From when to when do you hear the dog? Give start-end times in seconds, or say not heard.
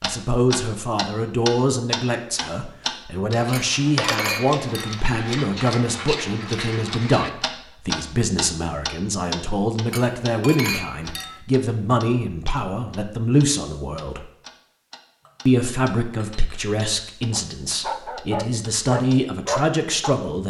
17.3-20.1.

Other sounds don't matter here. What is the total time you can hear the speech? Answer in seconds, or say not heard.
19 s.